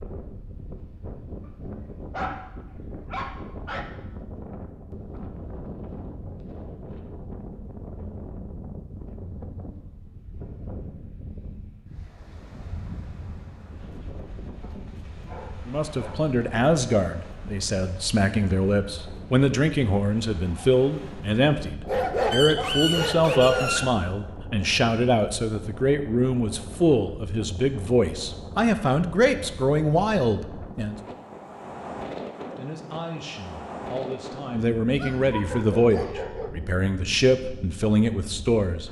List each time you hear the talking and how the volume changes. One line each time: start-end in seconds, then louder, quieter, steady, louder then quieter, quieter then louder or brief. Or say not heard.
15.7-30.9 steady
32.4-38.8 louder.